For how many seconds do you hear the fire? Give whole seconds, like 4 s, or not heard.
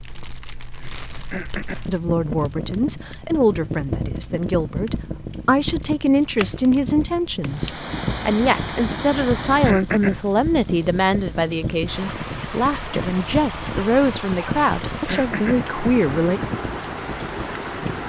18 s.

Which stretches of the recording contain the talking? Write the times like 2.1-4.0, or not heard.
1.9-16.4.